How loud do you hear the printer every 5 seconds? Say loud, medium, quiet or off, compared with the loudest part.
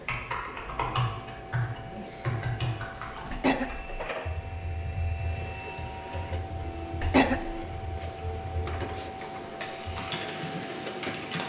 medium, loud, loud.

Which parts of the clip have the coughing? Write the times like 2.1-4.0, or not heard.
3.3-3.9, 7.0-7.7.